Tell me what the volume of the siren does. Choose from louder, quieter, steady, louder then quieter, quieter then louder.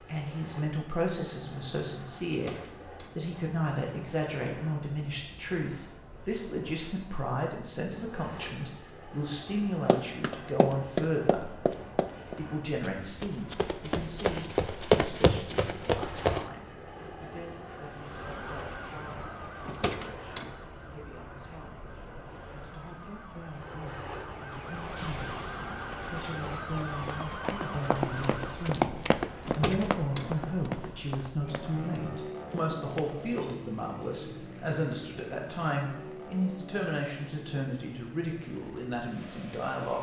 quieter then louder.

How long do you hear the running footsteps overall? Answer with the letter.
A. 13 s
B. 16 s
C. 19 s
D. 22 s
A.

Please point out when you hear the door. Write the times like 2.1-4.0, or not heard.
2.2-3.2, 19.6-20.6, 29.4-30.4.